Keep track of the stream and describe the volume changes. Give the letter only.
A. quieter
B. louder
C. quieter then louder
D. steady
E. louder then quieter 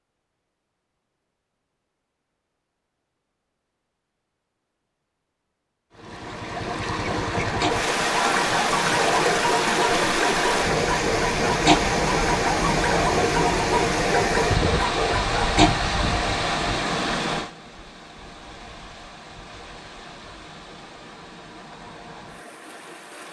A.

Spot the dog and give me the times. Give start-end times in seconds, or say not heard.
7.6-15.9.